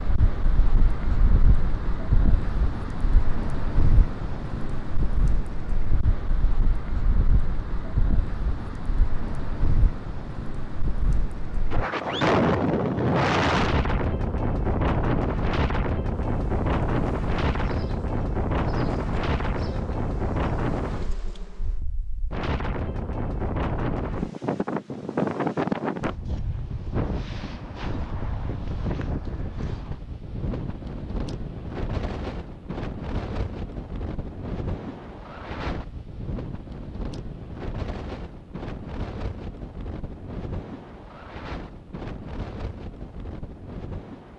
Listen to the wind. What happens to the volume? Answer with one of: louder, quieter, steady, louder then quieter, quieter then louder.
louder then quieter.